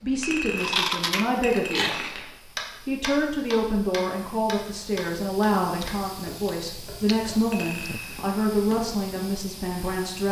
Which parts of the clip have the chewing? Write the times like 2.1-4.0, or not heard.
0.6-2.4, 5.6-7.4.